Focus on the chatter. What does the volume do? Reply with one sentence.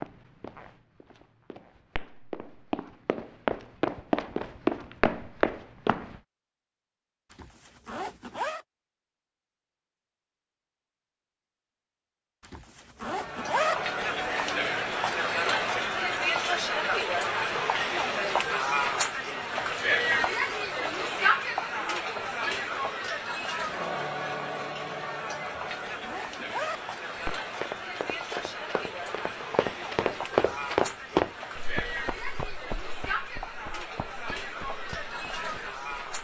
The volume of the chatter goes down.